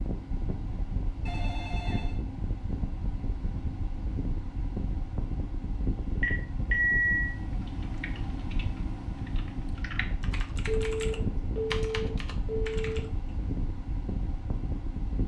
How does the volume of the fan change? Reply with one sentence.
The loudness of the fan stays about the same.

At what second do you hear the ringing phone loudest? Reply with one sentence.
The loudest moment of the ringing phone is at 7 seconds.